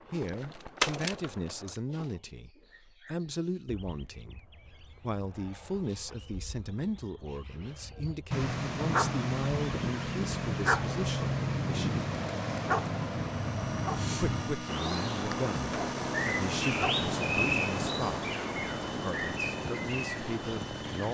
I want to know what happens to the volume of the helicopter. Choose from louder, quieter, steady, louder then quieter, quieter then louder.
steady.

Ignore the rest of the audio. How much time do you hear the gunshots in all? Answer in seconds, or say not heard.
2 s.